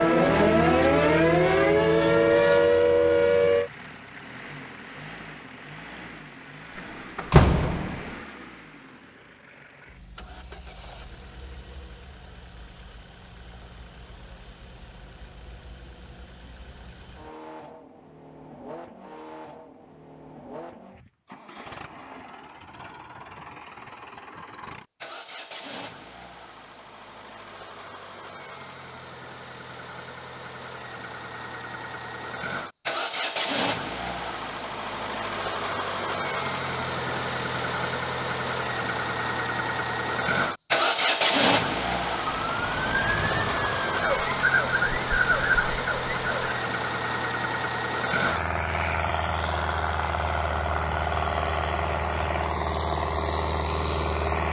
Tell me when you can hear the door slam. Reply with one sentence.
The door slam can be heard from 6.8 to 8.2 s.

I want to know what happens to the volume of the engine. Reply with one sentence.
The volume of the engine goes up.